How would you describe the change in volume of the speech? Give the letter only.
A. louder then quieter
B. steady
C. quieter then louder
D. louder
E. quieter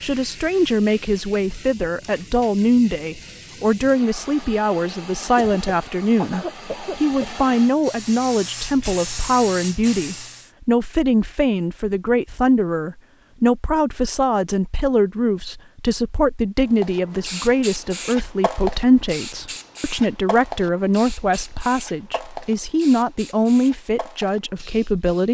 B.